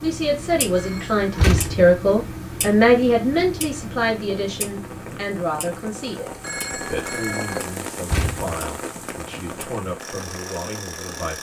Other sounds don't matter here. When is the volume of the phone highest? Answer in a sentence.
The volume of the phone peaks at 7 seconds.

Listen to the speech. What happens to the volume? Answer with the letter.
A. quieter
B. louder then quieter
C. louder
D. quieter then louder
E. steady
A.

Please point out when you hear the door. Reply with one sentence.
You can hear the door from 1.4 to 1.9 s and from 8.1 to 8.6 s.